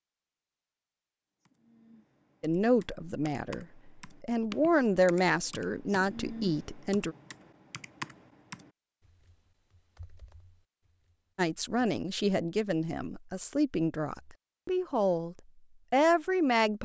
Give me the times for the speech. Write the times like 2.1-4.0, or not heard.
2.4-7.2, 11.3-16.8.